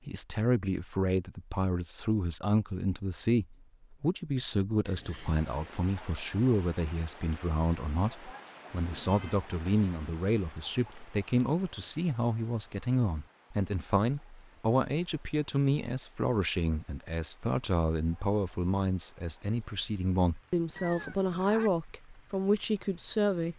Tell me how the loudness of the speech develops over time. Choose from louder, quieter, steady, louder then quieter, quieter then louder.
steady.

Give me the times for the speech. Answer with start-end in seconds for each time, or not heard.
0.1-23.5.